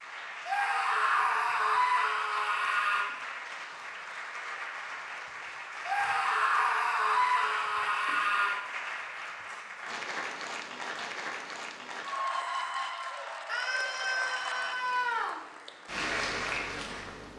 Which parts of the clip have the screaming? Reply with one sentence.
The screaming can be heard from 0.5 to 3.0 s, from 5.8 to 8.6 s and from 13.4 to 15.4 s.